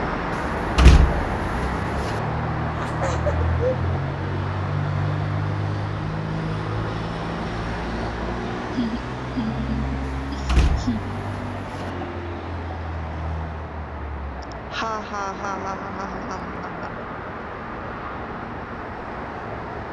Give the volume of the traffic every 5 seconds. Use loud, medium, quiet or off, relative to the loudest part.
loud, loud, medium, medium.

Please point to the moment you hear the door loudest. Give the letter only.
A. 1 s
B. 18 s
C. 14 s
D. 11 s
A.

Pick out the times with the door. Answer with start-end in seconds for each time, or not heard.
0.3-2.2, 10.1-11.9.